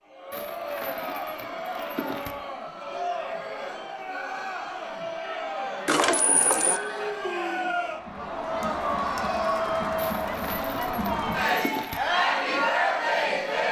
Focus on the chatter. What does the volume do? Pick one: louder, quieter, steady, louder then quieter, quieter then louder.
louder.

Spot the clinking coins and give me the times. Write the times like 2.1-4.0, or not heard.
0.3-2.4, 5.8-6.8, 9.9-12.0.